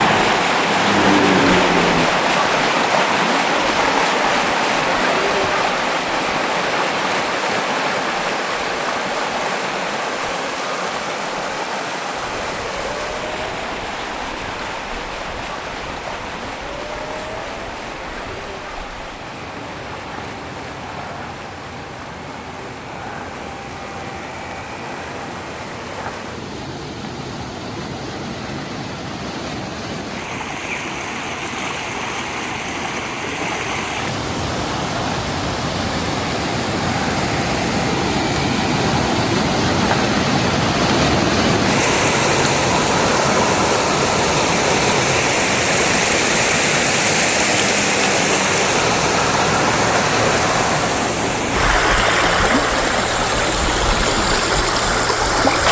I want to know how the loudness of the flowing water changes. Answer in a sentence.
The loudness of the flowing water goes down, then up.